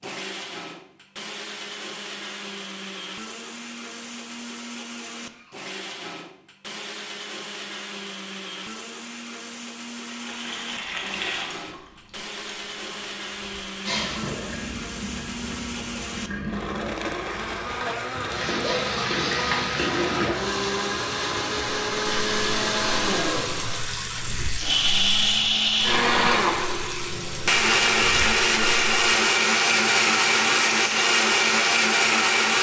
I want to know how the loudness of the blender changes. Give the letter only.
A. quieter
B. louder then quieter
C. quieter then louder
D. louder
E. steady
D.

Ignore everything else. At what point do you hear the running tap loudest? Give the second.
20 s.